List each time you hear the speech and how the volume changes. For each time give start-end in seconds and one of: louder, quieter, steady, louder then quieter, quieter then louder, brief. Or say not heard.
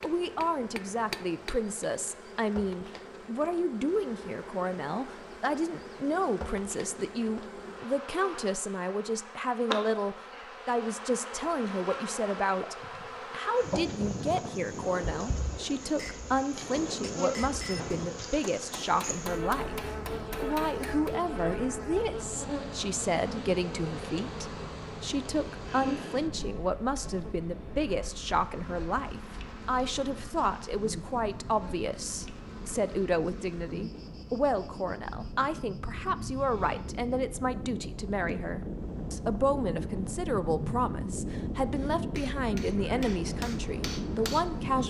0.0-44.8 steady.